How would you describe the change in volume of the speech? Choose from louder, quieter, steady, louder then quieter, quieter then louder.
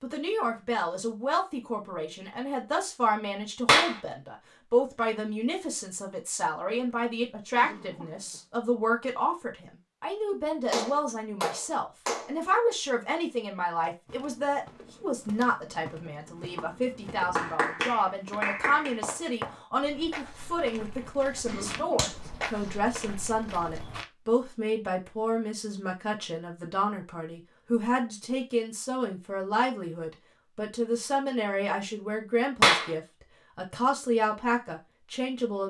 steady.